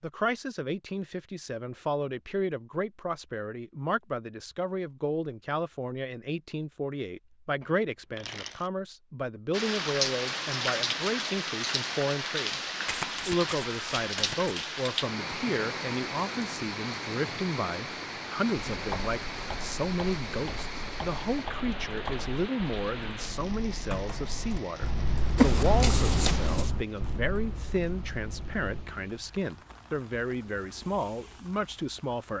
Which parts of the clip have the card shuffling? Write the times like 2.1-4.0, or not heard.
7.6-8.7, 12.8-14.6, 25.4-26.7.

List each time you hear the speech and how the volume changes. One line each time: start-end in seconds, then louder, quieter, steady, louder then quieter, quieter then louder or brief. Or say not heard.
0.0-12.6 steady
13.2-32.3 steady.